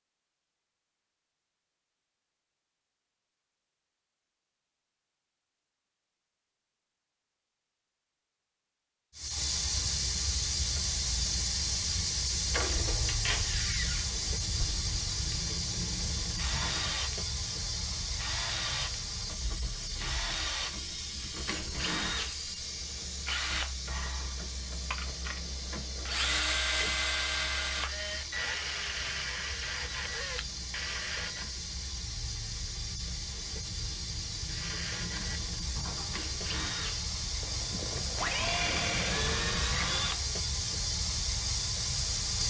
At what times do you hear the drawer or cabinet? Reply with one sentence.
You can hear the drawer or cabinet from 12.5 to 13.6 s.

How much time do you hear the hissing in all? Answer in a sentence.
The hissing can be heard for 33 seconds in total.